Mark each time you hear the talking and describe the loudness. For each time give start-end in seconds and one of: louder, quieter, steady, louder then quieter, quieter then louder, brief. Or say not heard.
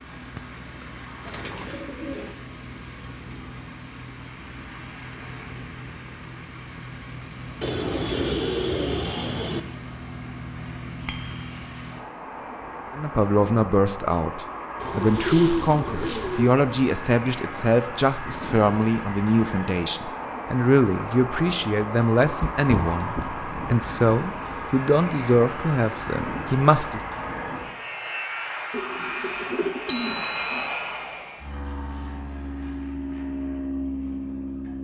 12.9-27.0 steady.